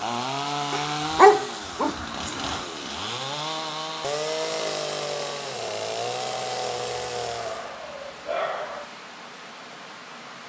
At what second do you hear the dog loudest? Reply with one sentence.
The loudest moment of the dog is at 1 second.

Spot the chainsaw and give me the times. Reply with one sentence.
The chainsaw can be heard from 0.0 to 7.8 s.